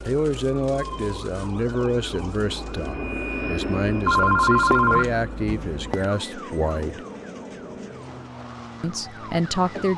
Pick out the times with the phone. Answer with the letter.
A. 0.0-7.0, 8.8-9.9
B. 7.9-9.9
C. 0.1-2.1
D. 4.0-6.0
D.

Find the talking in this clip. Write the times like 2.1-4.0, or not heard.
0.0-7.0, 8.8-9.9.